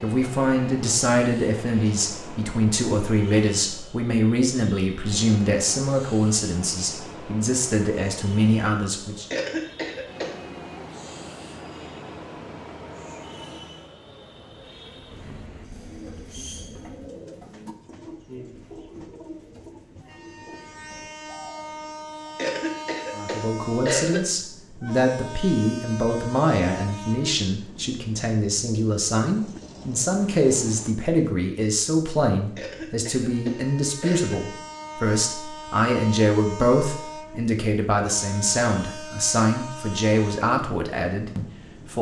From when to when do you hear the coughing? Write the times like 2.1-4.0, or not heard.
9.3-10.3, 22.4-24.2, 32.5-34.4.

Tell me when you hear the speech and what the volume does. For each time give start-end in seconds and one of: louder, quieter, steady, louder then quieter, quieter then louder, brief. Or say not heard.
0.0-9.2 steady
23.1-41.9 steady.